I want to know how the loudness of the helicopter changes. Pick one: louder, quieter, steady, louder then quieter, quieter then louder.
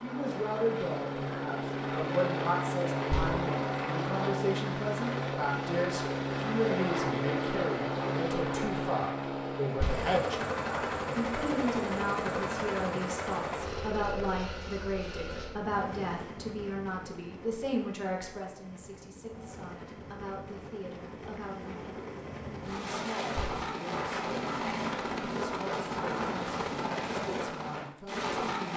quieter then louder.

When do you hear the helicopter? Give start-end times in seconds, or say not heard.
0.0-28.7.